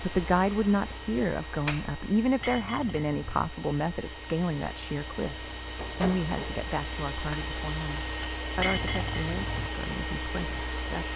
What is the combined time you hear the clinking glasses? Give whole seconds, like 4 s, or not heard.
2 s.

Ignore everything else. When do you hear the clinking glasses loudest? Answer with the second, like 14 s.
9 s.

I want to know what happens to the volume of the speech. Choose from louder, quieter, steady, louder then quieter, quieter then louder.
quieter.